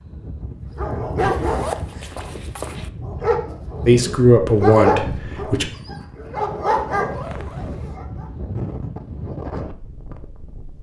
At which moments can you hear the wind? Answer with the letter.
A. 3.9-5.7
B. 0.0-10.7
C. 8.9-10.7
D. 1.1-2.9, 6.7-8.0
B.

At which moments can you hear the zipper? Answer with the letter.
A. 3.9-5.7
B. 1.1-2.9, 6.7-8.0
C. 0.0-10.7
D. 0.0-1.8
B.